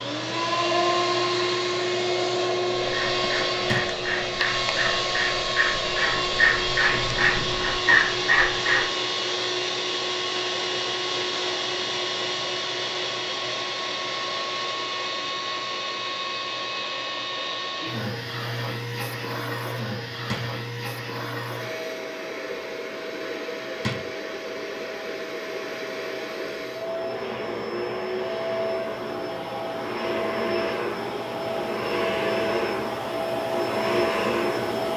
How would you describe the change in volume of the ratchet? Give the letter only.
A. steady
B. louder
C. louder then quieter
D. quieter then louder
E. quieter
B.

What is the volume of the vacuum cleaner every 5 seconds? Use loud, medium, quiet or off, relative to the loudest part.
loud, loud, loud, medium, medium, medium, loud.